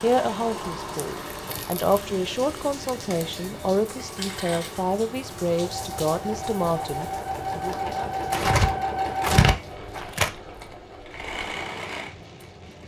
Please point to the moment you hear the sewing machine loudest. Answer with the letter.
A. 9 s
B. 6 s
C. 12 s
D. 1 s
A.